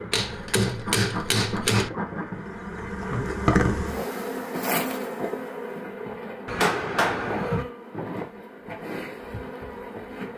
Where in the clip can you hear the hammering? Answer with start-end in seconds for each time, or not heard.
0.1-1.9, 6.5-7.7.